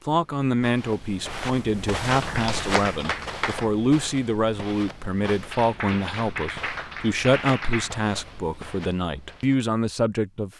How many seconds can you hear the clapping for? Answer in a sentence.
You can hear the clapping for 4 seconds altogether.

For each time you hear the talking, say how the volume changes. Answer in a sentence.
You can hear the talking from 0.1 to 10.5 s, at a steady volume.